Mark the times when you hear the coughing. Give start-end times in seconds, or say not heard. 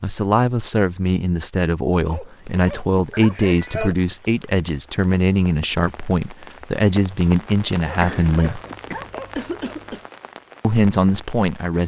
3.1-4.0, 8.0-10.1.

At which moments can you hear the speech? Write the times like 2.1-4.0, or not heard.
0.0-8.6, 10.6-11.8.